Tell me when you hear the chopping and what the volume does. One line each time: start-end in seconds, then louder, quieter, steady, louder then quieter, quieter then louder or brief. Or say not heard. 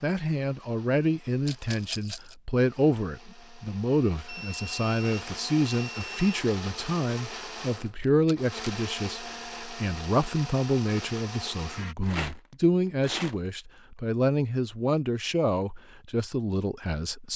not heard.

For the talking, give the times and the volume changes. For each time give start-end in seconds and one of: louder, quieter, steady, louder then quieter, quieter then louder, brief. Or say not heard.
0.0-17.3 steady.